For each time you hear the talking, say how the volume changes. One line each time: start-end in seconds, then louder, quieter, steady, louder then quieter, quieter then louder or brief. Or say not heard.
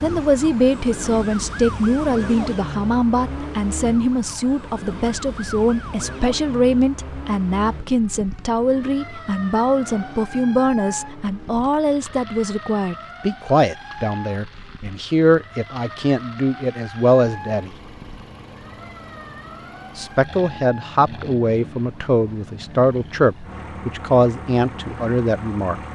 0.0-17.7 steady
19.9-25.8 steady.